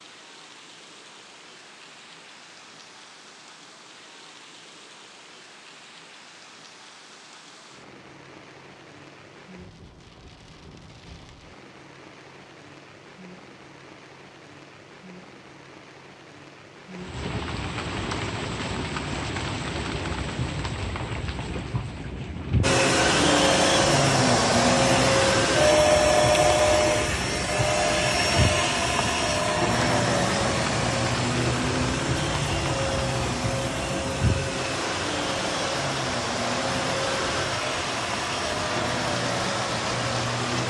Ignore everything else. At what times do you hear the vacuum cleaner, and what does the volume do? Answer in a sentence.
The vacuum cleaner can be heard from 22.6 to 40.6 s, getting quieter.